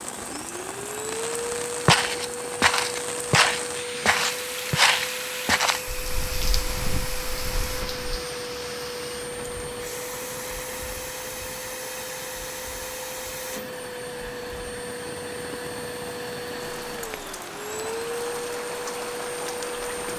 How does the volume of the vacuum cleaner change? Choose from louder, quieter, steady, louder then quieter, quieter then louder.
steady.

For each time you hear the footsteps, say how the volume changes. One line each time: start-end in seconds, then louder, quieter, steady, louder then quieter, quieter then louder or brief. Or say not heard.
1.5-8.0 quieter.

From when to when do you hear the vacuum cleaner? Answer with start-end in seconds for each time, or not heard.
0.0-20.1.